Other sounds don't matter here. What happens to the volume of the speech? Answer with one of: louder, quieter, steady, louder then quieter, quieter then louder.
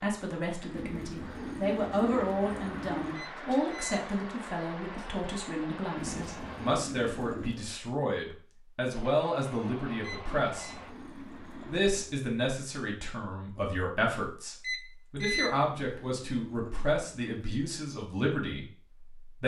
steady.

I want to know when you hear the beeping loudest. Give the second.
15 s.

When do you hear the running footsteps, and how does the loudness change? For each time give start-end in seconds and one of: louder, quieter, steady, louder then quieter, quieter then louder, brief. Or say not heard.
not heard.